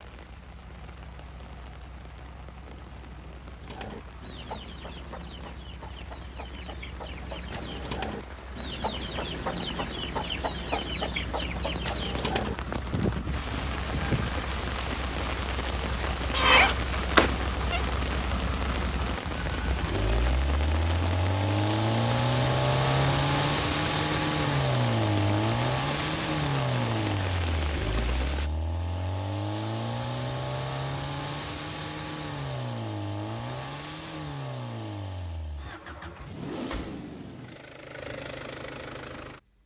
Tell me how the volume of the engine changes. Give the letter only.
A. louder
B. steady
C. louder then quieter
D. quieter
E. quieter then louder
C.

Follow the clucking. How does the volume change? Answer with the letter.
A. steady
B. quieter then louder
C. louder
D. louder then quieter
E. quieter
C.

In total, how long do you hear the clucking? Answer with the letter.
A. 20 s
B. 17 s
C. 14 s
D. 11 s
D.